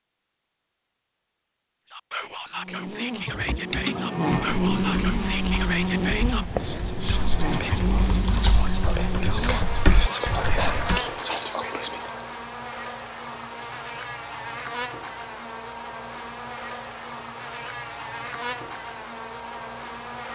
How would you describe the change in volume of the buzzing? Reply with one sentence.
The volume of the buzzing goes down.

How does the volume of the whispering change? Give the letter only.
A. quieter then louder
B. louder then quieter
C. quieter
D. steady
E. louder
E.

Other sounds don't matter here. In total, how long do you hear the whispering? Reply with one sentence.
You can hear the whispering for 10 seconds altogether.